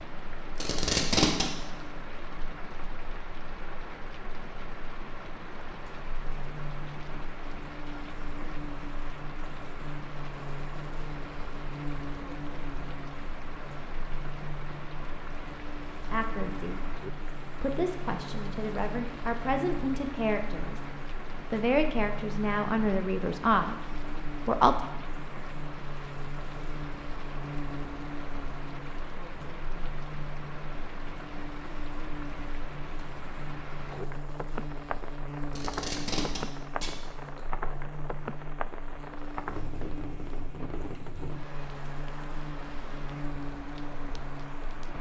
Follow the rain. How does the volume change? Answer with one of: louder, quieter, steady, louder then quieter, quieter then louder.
steady.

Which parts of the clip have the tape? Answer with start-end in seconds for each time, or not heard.
0.6-1.4, 35.5-37.4.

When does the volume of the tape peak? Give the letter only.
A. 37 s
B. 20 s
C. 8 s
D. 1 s
D.